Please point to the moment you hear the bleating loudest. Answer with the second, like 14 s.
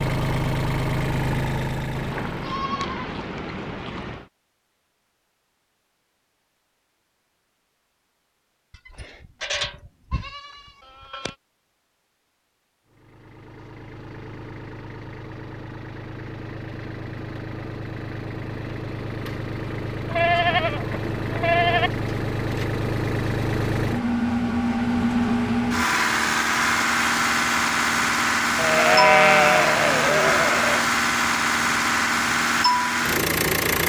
29 s.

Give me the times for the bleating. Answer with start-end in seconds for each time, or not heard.
1.9-4.2, 8.9-11.3, 20.1-21.9, 28.6-30.9.